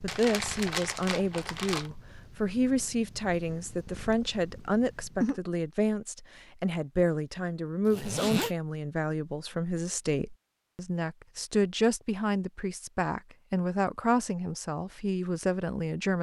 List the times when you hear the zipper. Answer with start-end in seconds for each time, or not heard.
7.8-8.6.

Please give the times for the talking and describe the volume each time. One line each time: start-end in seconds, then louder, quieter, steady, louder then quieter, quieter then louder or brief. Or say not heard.
0.0-16.1 steady.